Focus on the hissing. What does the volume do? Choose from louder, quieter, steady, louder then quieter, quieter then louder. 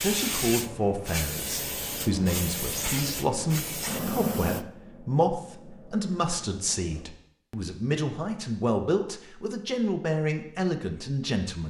quieter.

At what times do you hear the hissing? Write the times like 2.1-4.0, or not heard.
0.0-7.1.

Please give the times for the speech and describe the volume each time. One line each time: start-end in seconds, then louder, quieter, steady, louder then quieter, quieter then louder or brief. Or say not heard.
0.0-11.6 steady.